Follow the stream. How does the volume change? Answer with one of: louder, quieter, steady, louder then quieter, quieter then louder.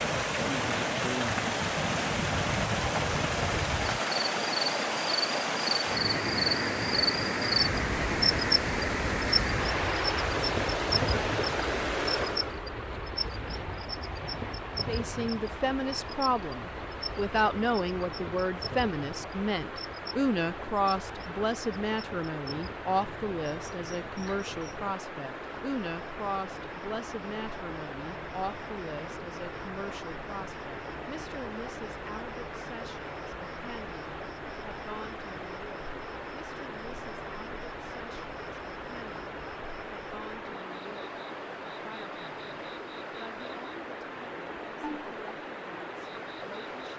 quieter.